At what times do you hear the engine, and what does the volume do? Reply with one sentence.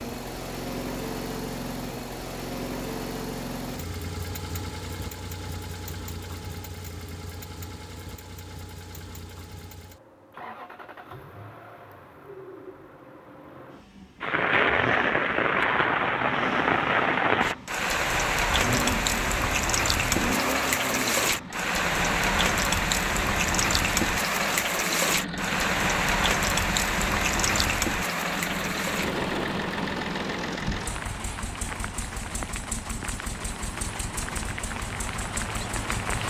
You can hear the engine from 0.0 to 36.2 s, getting quieter then louder.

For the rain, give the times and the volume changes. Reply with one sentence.
The rain can be heard from 14.2 to 36.2 s, getting quieter.